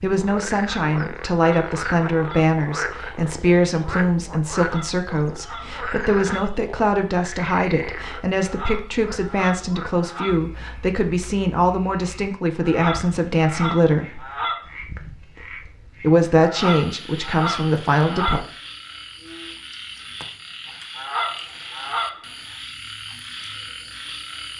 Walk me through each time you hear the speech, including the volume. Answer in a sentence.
You can hear the speech from 0.0 to 14.2 s, at a steady volume; and briefly from 16.0 to 18.4 s.